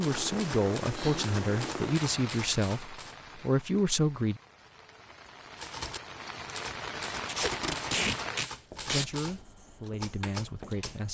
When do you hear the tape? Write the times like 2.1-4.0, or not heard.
7.2-9.1.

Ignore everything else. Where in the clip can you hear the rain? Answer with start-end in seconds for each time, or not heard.
0.0-8.4.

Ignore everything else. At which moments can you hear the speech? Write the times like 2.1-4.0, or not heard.
0.0-4.4, 8.8-11.0.